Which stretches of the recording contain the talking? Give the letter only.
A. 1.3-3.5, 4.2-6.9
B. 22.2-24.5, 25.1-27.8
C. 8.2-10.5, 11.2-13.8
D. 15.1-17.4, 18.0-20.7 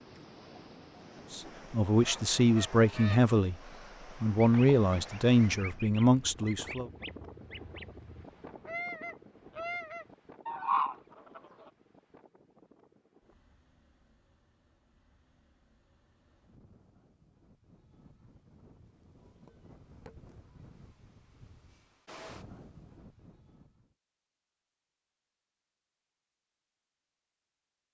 A.